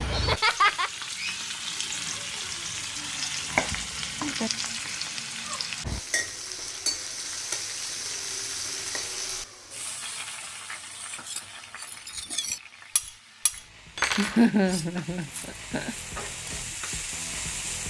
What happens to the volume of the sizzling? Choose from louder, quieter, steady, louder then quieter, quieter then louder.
quieter then louder.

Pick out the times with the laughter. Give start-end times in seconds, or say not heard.
0.1-0.9, 14.2-15.9.